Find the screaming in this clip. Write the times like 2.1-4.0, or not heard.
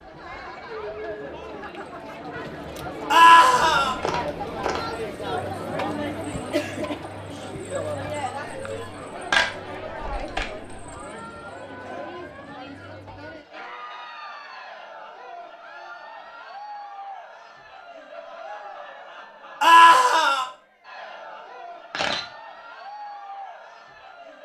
3.1-4.0, 19.6-20.4.